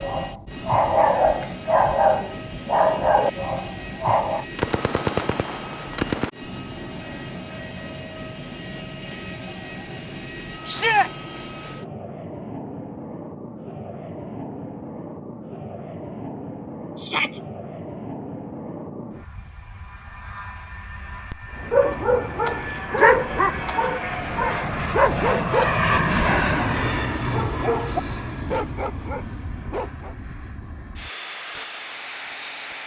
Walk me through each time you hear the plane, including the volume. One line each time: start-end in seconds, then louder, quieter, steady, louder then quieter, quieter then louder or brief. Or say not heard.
0.0-32.8 louder.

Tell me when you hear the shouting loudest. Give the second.
11 s.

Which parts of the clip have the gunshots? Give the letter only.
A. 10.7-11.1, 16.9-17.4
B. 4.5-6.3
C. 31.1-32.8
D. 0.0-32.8
B.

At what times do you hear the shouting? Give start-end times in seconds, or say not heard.
10.7-11.1, 16.9-17.4.